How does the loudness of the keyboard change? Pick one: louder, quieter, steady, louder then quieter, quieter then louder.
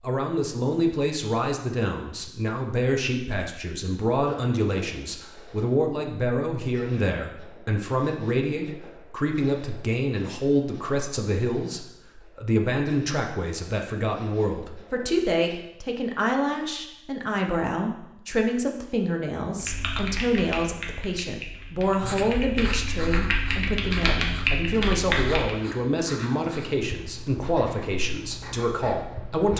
quieter then louder.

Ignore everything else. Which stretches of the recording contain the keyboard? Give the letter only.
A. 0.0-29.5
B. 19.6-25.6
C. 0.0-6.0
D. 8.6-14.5
B.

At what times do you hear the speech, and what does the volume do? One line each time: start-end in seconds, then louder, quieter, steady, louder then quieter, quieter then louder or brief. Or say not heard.
0.0-29.5 steady.